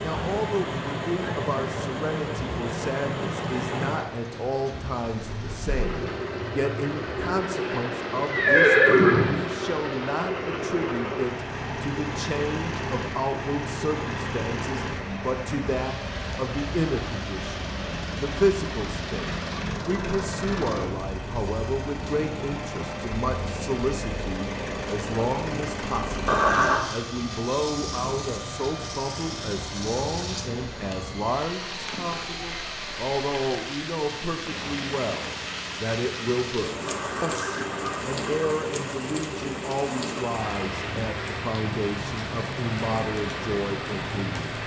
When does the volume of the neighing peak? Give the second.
9 s.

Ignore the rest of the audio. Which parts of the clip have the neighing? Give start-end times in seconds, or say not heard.
8.2-9.4, 26.2-26.9, 36.9-38.5.